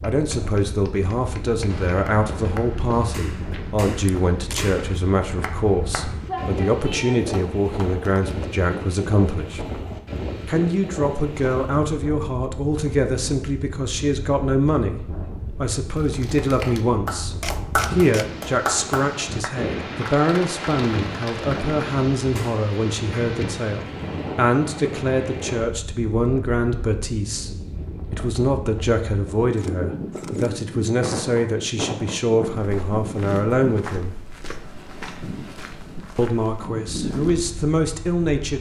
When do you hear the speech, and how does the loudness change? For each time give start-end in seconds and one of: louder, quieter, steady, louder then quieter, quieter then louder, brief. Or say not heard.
0.0-9.6 steady
10.4-34.1 steady
36.1-38.5 brief.